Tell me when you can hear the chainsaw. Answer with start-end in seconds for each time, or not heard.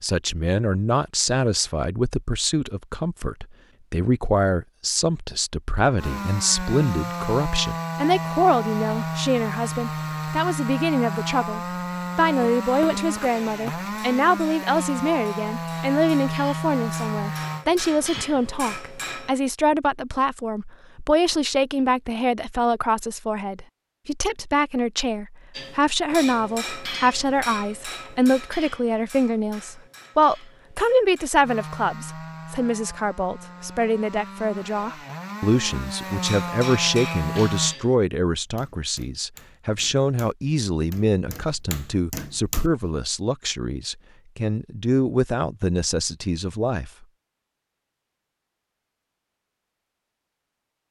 6.0-17.6, 31.4-37.8.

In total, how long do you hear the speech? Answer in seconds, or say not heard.
47 s.